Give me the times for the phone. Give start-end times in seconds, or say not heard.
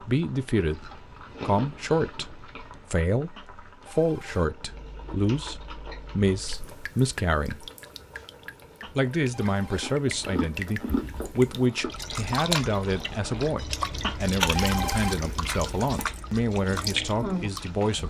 3.4-4.5, 8.8-9.9, 14.0-15.2.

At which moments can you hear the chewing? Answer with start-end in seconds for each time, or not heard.
0.6-2.9, 4.7-6.5, 9.4-11.9, 14.4-15.7.